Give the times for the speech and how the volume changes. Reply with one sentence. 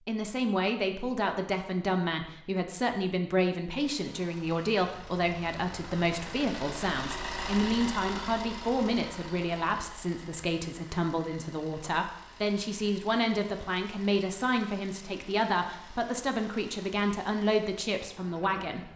You can hear the speech from 0.1 to 18.9 s, at a steady volume.